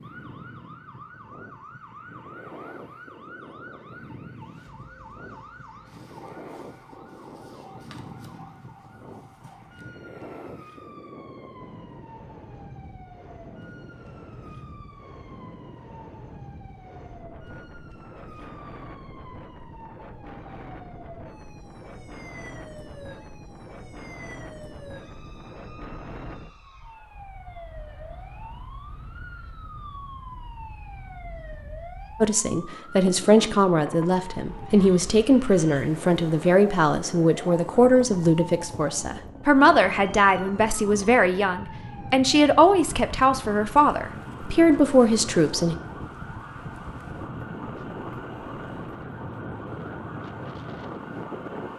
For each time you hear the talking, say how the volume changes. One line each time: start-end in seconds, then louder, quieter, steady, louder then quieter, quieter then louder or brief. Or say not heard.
32.2-45.8 steady.